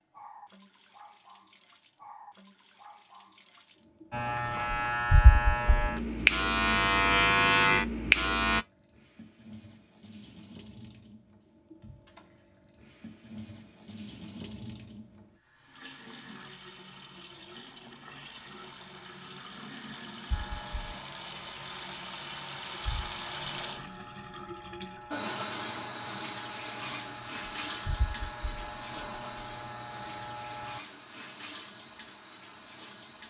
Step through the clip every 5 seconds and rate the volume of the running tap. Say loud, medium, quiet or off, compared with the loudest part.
quiet, quiet, medium, medium, loud, loud, medium.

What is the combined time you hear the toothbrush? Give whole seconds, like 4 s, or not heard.
not heard.